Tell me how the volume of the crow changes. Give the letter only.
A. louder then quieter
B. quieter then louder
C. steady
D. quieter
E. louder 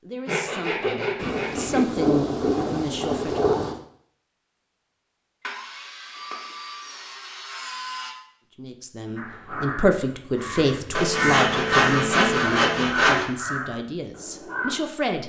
A.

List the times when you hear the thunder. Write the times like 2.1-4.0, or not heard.
1.1-3.8.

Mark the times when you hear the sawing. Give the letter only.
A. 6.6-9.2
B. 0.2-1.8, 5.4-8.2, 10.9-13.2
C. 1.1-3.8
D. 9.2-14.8
B.